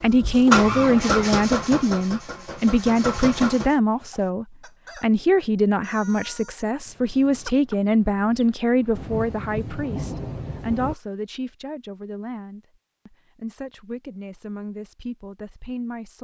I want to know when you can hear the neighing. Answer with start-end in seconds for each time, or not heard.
not heard.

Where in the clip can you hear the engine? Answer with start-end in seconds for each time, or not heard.
0.0-3.7.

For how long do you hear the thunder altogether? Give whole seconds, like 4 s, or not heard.
2 s.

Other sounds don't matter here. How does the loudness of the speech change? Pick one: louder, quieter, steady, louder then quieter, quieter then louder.
quieter.